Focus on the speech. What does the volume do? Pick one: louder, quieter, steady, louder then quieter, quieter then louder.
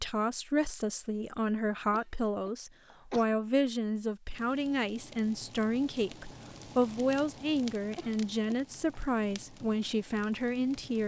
steady.